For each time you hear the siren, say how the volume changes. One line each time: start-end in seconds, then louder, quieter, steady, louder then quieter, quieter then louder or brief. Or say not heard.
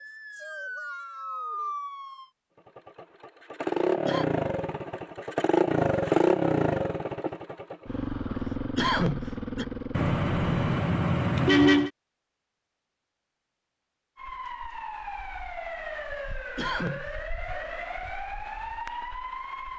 0.0-2.2 brief
14.2-19.7 steady.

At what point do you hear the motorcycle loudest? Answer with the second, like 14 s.
6 s.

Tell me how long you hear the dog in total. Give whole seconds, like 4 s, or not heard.
not heard.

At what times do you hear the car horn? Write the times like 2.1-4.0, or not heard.
9.9-11.9.